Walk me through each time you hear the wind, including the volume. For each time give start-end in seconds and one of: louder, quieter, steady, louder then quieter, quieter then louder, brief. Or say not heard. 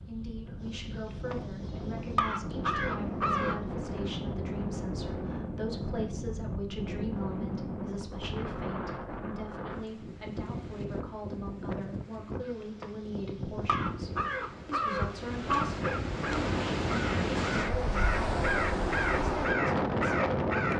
0.0-20.7 louder.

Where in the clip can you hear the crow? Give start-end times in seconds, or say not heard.
0.1-3.6, 12.4-20.7.